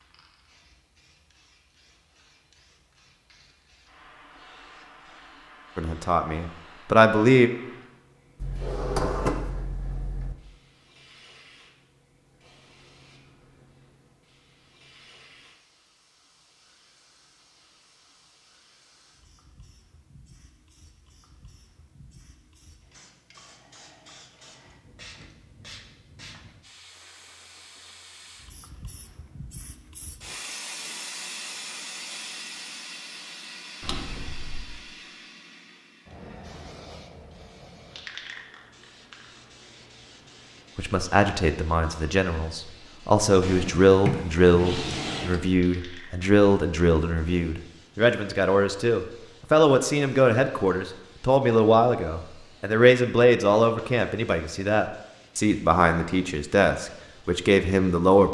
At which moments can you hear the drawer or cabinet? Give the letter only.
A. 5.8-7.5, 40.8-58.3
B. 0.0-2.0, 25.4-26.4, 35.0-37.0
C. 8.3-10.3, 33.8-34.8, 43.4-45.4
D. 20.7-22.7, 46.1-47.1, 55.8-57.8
C.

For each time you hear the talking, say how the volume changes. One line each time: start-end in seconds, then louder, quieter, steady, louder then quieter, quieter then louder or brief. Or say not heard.
5.8-7.5 brief
40.8-58.3 steady.